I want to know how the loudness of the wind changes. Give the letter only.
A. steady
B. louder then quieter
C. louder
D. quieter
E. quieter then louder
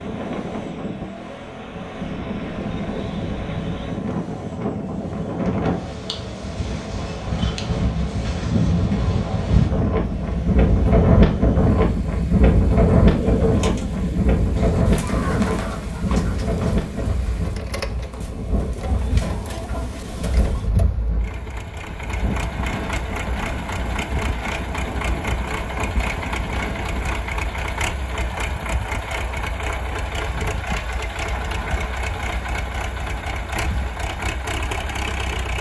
B.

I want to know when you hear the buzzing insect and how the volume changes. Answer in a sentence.
You can't hear the buzzing insect here.